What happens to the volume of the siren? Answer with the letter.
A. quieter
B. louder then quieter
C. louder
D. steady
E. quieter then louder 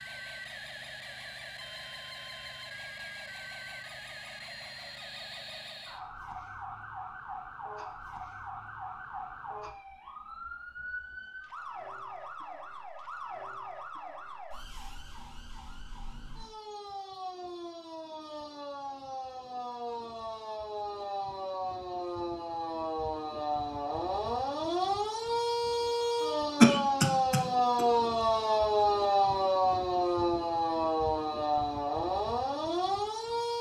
C.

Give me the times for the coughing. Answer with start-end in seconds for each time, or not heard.
26.6-27.9.